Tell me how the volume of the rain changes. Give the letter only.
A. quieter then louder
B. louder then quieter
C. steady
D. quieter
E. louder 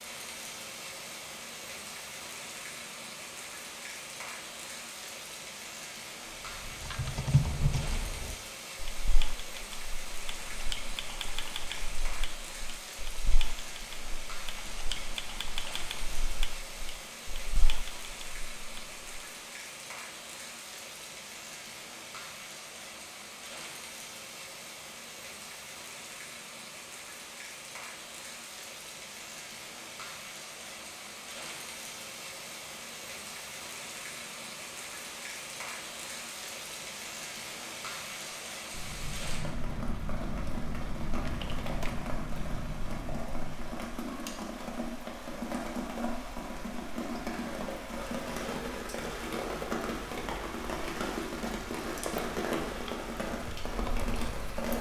E.